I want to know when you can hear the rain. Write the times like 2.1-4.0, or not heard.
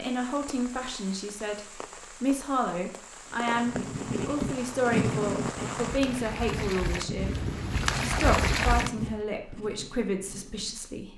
0.0-9.2.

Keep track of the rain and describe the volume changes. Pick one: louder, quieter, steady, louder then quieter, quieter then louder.
louder.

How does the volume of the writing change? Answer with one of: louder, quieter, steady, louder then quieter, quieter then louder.
quieter.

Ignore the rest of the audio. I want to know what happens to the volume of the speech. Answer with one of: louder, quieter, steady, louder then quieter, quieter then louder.
steady.